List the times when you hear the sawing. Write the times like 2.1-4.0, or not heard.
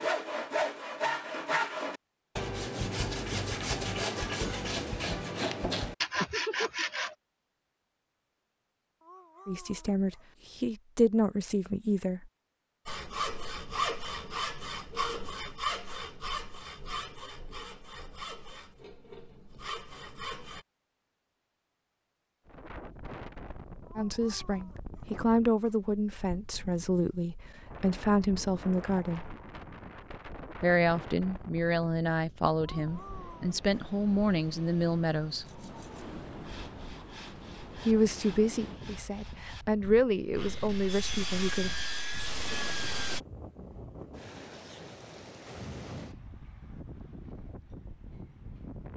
0.0-7.2, 12.8-20.6, 35.4-43.2.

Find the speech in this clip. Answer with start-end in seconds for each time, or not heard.
9.4-12.3, 23.9-29.4, 30.6-35.5, 37.9-41.7.